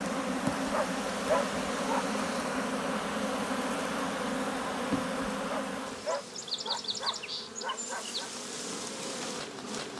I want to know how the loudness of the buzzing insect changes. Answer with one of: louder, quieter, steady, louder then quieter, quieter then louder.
quieter.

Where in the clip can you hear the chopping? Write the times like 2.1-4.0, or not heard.
not heard.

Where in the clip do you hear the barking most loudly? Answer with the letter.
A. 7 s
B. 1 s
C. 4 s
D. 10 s
B.